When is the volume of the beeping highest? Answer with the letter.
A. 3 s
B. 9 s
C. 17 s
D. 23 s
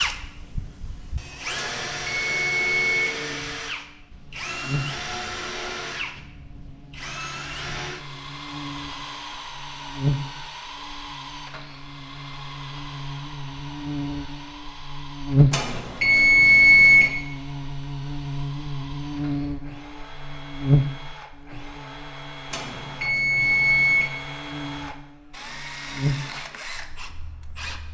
C.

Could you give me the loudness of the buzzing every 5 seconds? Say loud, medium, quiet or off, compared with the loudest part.
quiet, quiet, medium, loud, loud, medium.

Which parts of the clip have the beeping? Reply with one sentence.
You can hear the beeping from 1.6 to 3.1 s, from 15.5 to 17.1 s and from 22.5 to 24.1 s.